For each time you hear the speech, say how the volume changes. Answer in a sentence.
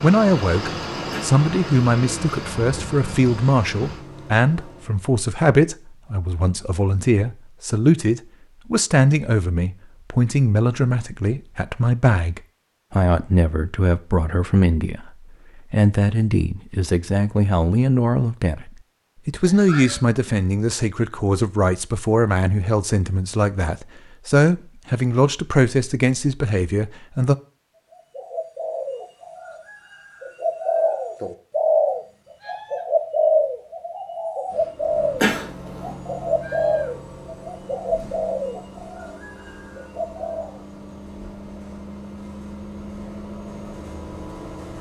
The speech can be heard from 0.0 to 27.4 s, at a steady volume.